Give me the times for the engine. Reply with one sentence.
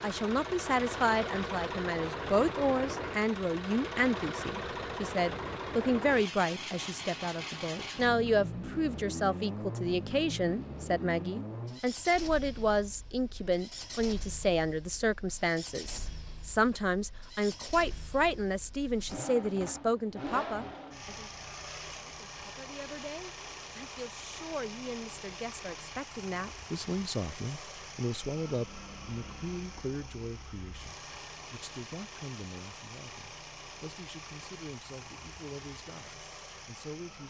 The engine can be heard from 0.0 to 37.2 s.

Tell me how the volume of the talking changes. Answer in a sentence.
The loudness of the talking goes down.